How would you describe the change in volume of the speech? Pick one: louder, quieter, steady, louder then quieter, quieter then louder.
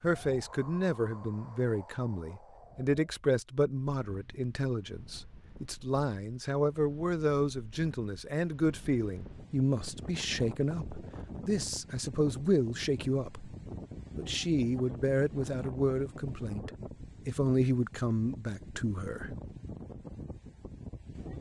steady.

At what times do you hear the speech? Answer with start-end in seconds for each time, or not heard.
0.0-13.5, 14.2-19.4.